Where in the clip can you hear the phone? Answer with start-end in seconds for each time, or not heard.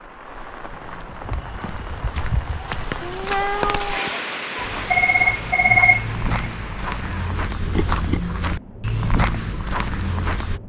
4.9-6.3.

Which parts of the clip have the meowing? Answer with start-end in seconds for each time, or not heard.
3.0-4.1.